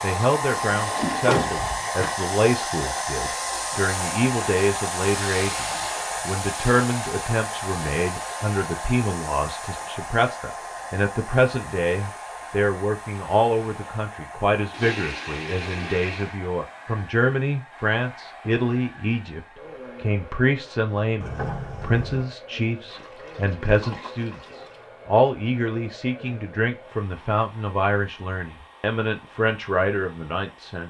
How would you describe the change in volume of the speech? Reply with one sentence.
The loudness of the speech stays about the same.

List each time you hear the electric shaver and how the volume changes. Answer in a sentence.
You can't hear the electric shaver here.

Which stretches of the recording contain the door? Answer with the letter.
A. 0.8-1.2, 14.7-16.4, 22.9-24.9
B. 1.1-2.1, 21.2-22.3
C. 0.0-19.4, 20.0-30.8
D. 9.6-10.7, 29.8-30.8
B.